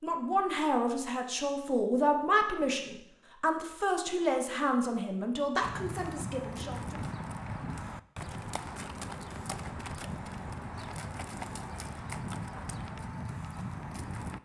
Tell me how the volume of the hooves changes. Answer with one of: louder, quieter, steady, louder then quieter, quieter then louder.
steady.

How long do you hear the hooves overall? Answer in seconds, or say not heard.
9 s.